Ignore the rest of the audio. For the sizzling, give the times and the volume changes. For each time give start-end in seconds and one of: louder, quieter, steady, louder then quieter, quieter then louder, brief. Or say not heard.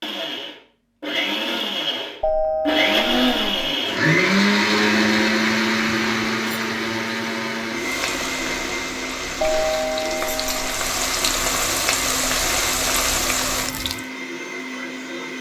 7.8-14.1 louder.